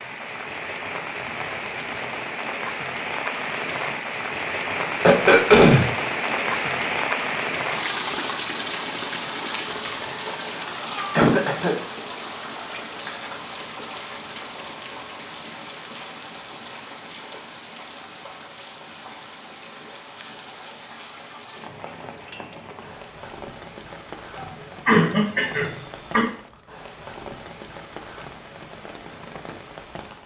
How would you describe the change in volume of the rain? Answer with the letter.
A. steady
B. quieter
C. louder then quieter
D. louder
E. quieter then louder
B.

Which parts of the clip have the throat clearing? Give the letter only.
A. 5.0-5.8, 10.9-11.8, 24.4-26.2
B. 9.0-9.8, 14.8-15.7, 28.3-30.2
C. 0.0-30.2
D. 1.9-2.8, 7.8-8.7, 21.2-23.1
A.